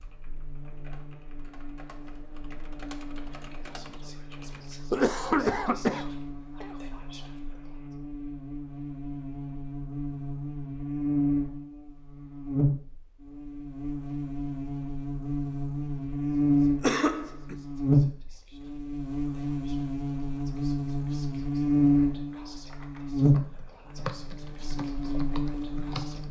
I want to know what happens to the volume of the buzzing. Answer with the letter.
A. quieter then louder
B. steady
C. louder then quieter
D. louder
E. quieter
D.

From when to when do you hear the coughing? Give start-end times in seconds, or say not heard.
4.9-6.8, 16.8-17.6.